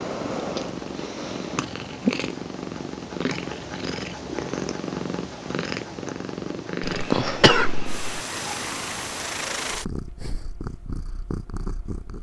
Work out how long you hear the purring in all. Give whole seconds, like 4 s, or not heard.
12 s.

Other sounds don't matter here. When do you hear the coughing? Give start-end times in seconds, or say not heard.
6.8-8.2.